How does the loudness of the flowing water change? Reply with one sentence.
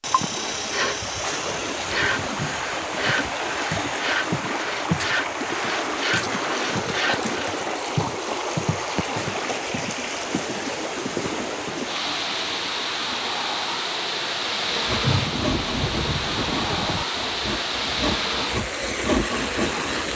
The volume of the flowing water stays about the same.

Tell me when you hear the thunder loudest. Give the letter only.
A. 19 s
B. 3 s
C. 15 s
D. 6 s
C.